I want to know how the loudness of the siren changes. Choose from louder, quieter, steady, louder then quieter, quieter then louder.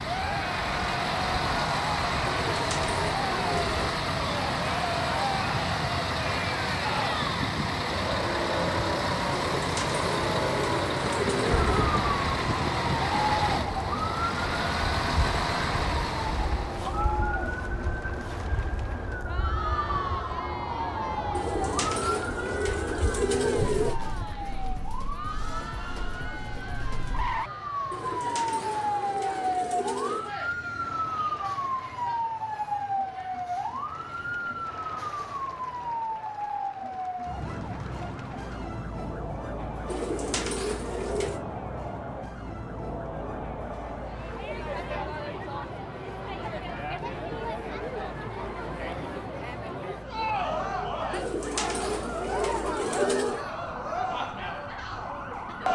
quieter.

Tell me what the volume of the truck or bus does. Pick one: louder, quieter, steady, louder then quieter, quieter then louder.
steady.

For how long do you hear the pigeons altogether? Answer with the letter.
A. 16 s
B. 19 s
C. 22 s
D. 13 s
D.